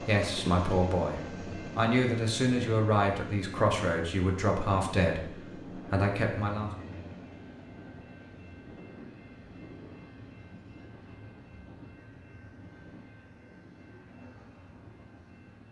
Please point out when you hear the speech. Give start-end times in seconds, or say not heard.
0.0-6.7.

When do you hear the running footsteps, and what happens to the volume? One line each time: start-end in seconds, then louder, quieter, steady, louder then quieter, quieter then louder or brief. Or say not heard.
not heard.